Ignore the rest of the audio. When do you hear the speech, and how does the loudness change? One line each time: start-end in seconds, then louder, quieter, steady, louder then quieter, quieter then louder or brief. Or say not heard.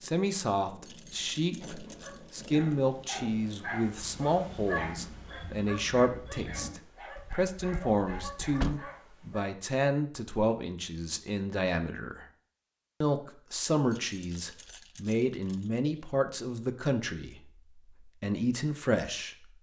0.0-12.2 steady
13.0-19.5 steady.